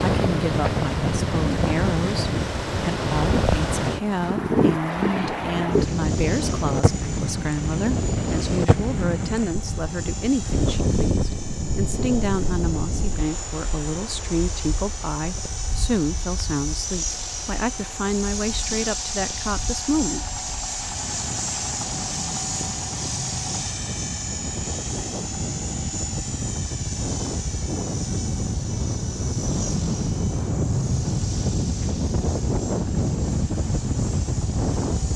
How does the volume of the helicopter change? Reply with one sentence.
The loudness of the helicopter goes up, then down.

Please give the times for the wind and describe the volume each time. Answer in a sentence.
You can hear the wind from 0.0 to 35.1 s, getting quieter then louder.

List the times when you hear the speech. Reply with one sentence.
The speech can be heard from 0.0 to 20.4 s.